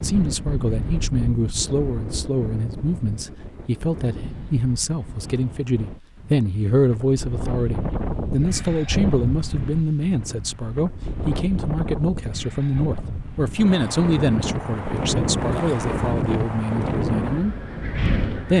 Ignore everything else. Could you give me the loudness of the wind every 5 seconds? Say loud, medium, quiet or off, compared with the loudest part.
medium, medium, medium, loud.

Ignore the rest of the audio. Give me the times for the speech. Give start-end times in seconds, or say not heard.
0.0-18.5.